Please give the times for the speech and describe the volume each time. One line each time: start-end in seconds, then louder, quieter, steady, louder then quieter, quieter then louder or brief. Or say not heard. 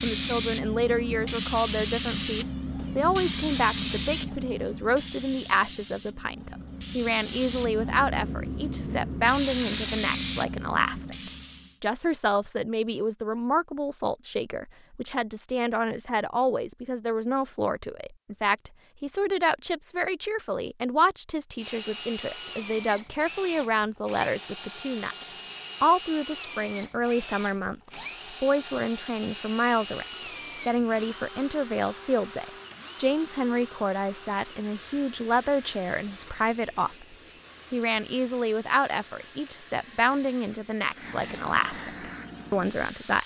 0.0-30.1 steady
30.6-43.2 steady.